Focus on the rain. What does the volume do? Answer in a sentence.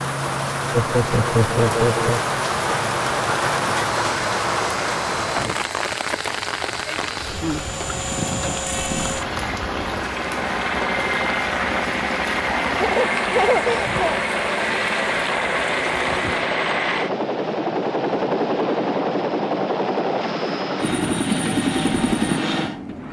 The loudness of the rain goes down.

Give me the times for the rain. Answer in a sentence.
You can hear the rain from 0.0 to 16.6 s.